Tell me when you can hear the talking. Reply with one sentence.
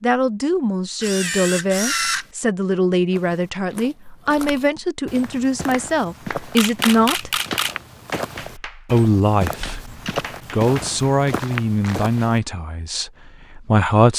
You can hear the talking from 0.0 to 7.3 s, from 8.8 to 9.8 s and from 10.5 to 14.1 s.